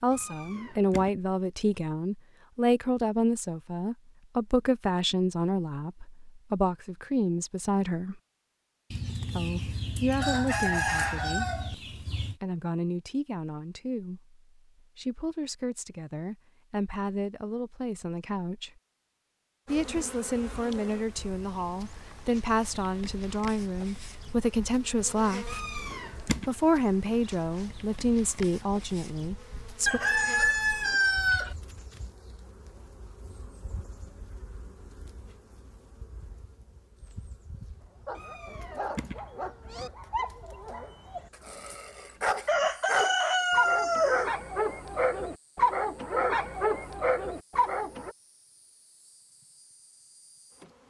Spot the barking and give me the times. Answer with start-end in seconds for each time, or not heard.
37.9-48.1.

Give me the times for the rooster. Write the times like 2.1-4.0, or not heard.
8.9-12.3, 29.9-31.6, 42.5-44.3.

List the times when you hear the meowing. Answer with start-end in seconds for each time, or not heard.
0.1-1.1, 25.4-26.5, 38.1-39.9.